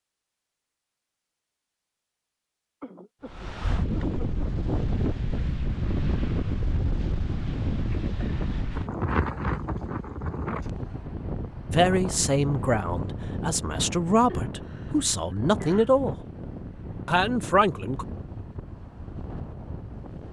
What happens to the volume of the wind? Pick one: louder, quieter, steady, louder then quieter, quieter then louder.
quieter.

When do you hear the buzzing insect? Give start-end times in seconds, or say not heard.
not heard.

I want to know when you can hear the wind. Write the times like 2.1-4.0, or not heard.
3.2-20.2.